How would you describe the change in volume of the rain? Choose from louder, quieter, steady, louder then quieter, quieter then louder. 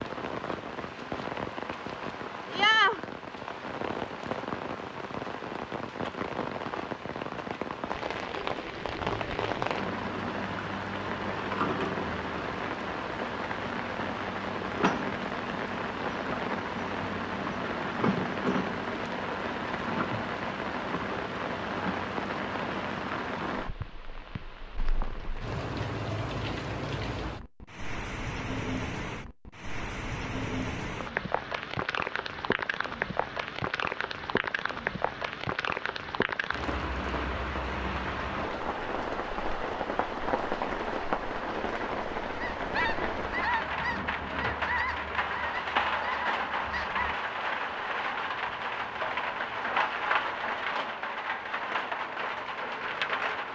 steady.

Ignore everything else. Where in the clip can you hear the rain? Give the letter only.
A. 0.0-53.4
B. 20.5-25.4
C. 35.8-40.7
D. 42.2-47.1
A.